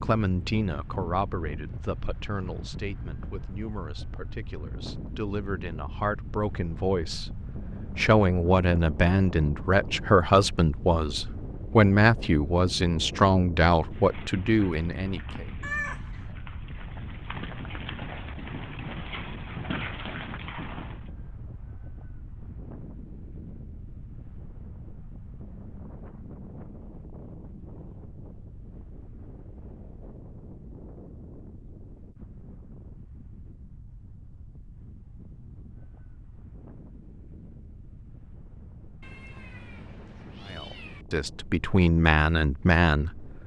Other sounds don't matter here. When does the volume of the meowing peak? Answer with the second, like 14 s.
16 s.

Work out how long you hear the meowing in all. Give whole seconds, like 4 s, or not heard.
3 s.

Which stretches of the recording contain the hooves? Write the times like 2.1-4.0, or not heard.
13.9-21.1.